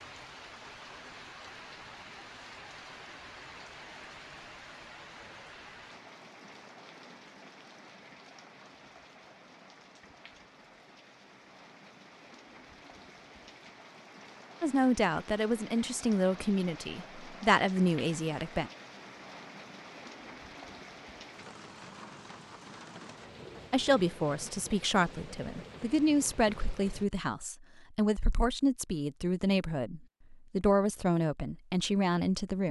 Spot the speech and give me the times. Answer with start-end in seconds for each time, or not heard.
14.6-18.7, 23.7-32.6.